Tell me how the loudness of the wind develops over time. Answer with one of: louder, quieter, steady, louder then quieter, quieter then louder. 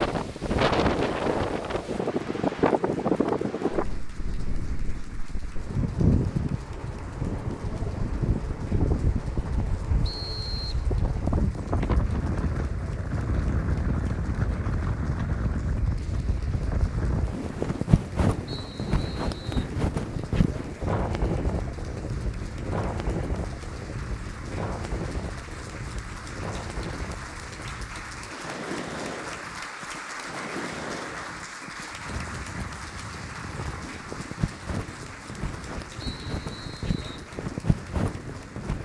quieter.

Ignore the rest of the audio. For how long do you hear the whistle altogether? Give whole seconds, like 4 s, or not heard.
3 s.